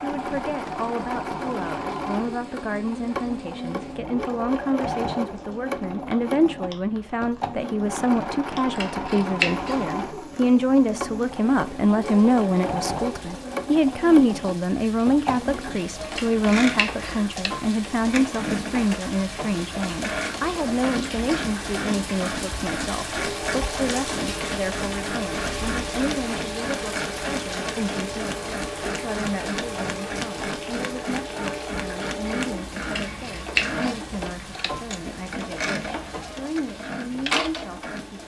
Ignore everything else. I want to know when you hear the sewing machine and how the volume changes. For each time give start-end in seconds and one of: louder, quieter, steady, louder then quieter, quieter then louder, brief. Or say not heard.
0.0-38.2 steady.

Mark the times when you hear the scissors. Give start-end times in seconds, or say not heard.
8.8-9.8, 16.1-17.2, 32.9-33.9.